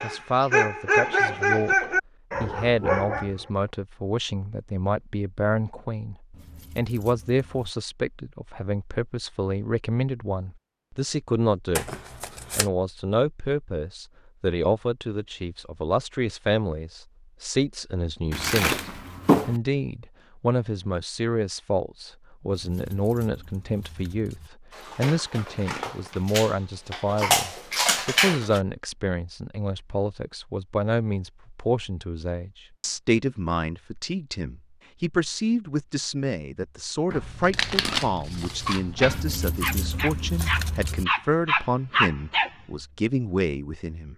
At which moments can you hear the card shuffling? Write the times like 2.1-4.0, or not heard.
11.8-12.7, 18.3-19.6, 37.1-39.2.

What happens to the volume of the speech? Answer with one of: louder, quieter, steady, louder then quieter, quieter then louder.
steady.